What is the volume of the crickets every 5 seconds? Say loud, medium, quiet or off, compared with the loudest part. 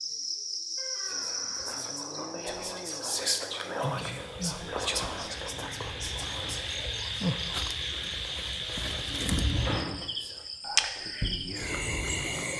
medium, loud, loud.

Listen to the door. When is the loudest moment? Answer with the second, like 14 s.
10 s.